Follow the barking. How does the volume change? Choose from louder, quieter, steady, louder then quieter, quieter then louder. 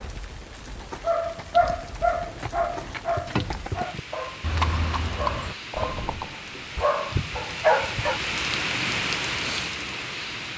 quieter then louder.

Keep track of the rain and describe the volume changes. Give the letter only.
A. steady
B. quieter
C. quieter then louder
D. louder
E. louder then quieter
D.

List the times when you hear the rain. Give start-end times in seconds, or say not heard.
0.0-10.5.